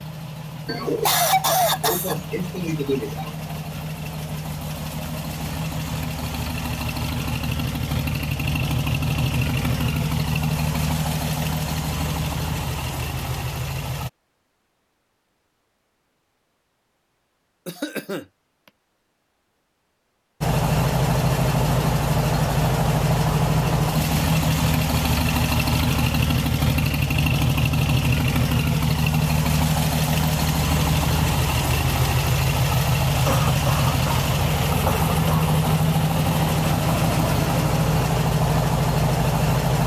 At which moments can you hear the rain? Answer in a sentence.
You can't hear the rain here.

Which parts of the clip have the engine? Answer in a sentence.
The engine can be heard from 0.0 to 14.1 s and from 20.4 to 39.8 s.